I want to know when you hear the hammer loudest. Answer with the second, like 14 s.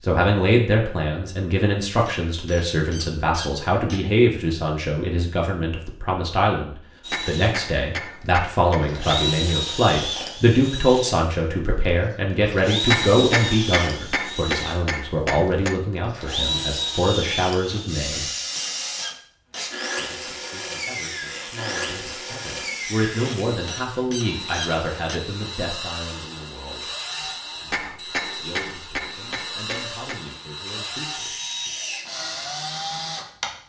13 s.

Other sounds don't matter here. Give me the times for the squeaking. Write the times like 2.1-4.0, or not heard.
2.0-4.0, 17.7-19.7, 23.2-25.2.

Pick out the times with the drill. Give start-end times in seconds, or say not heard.
7.0-33.5.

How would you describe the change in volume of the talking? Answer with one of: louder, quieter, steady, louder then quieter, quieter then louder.
quieter.